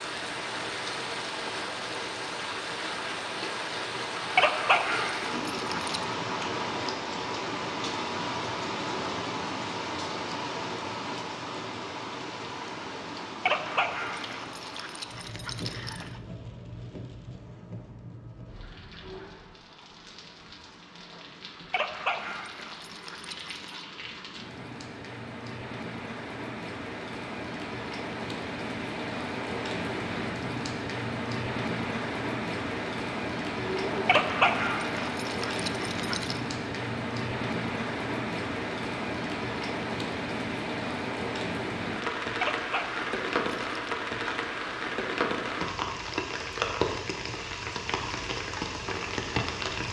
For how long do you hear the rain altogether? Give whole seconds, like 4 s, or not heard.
50 s.